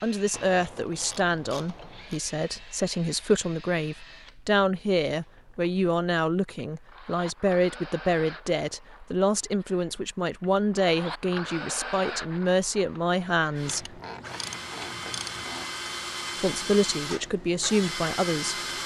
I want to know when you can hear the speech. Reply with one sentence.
You can hear the speech from 0.0 to 13.9 s and from 16.4 to 18.6 s.